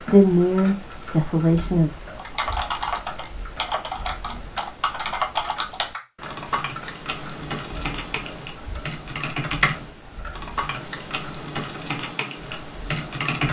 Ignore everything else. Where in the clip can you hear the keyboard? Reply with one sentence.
The keyboard can be heard from 2.1 to 13.4 s.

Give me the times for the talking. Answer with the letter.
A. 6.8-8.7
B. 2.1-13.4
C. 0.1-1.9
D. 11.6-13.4
C.